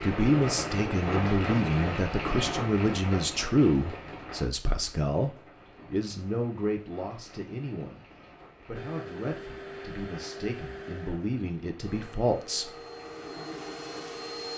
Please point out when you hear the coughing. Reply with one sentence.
You can't hear the coughing here.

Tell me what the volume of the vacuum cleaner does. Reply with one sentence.
The volume of the vacuum cleaner goes down, then up.